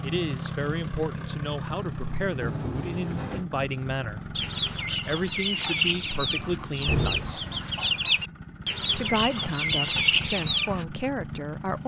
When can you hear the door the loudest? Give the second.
7 s.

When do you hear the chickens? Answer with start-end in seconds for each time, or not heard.
4.3-10.8.